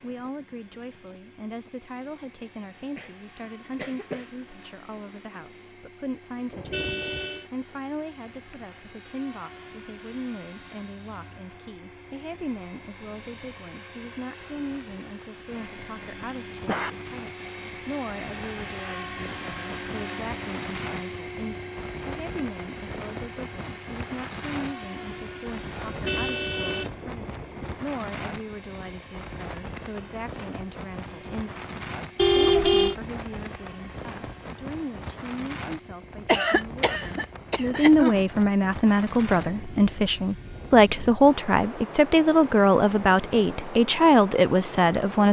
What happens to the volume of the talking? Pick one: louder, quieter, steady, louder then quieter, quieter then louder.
louder.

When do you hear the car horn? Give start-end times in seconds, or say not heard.
6.5-7.5, 25.9-27.8, 32.1-33.0.